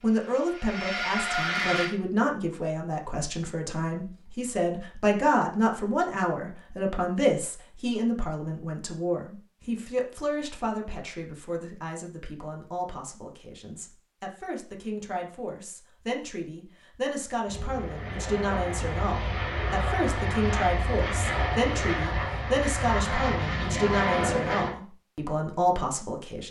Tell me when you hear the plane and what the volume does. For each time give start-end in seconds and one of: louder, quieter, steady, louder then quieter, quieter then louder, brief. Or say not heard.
0.0-1.9 brief
17.4-24.8 louder.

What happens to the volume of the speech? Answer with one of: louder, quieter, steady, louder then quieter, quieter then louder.
quieter then louder.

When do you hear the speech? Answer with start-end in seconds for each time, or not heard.
0.0-26.4.